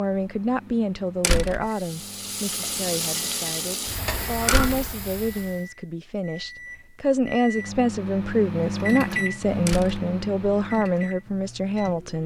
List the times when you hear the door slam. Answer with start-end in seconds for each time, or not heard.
1.2-1.6, 4.5-4.9, 9.7-10.1.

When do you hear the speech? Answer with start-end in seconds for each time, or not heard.
0.0-12.2.